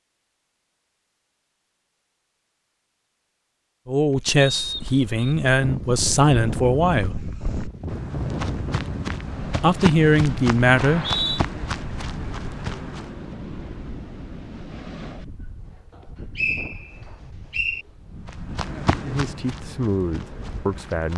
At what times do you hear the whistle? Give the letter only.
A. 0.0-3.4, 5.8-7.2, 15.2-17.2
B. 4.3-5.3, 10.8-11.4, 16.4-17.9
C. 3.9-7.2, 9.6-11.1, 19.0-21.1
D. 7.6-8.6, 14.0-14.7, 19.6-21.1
B.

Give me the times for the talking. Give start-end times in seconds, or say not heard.
3.9-7.2, 9.6-11.1, 19.0-21.1.